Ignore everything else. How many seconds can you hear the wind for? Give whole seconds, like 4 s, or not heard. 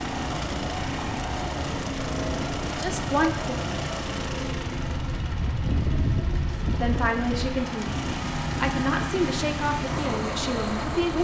11 s.